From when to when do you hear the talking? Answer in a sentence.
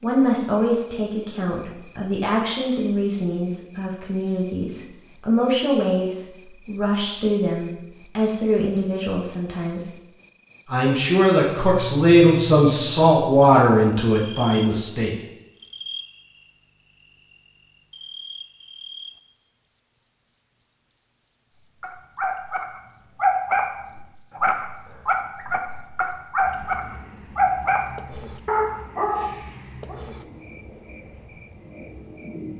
The talking can be heard from 0.0 to 9.9 s and from 10.7 to 15.2 s.